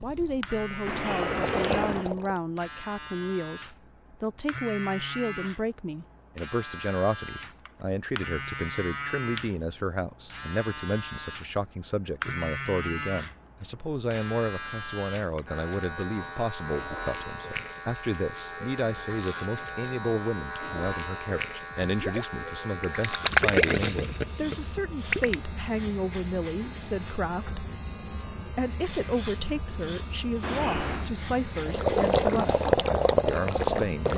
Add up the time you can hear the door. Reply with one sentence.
You can hear the door for 2 seconds altogether.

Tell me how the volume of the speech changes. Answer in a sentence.
The loudness of the speech stays about the same.